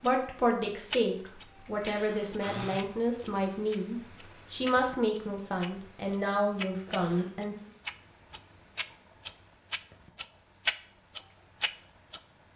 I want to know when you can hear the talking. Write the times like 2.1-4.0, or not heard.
0.0-7.5.